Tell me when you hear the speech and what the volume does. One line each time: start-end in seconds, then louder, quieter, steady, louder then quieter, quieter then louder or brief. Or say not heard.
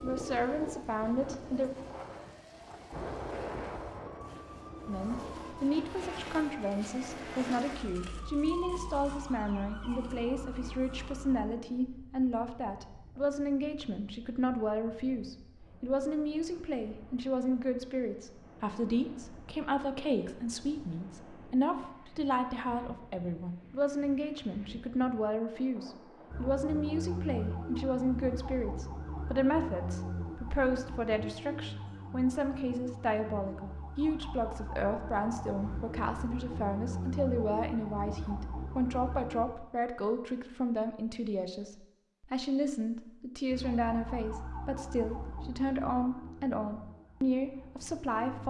0.0-1.7 brief
4.8-48.4 steady.